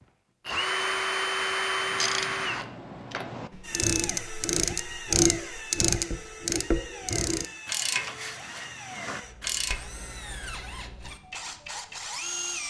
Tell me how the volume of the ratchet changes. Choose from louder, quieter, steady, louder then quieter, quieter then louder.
louder then quieter.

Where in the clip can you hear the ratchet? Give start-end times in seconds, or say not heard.
1.8-9.8.